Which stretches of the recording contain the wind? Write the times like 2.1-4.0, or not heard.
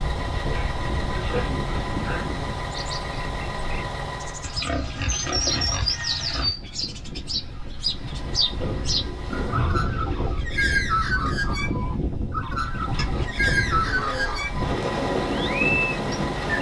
0.0-16.5.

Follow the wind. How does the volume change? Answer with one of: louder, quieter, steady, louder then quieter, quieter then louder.
quieter then louder.